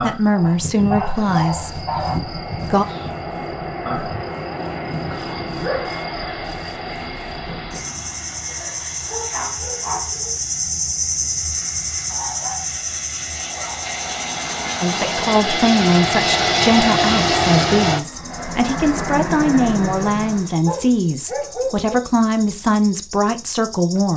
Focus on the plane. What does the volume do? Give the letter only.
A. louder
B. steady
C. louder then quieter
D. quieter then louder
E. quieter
D.